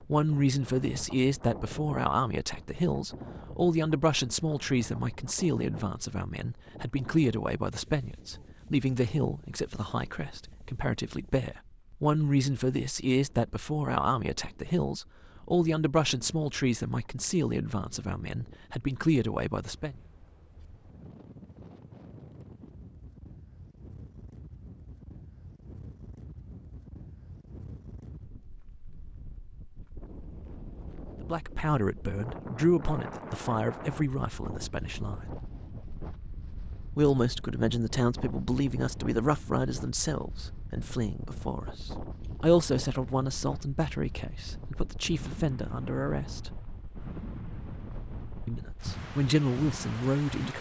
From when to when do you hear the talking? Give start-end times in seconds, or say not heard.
0.0-19.9, 31.2-35.2, 37.0-46.5, 48.5-50.5.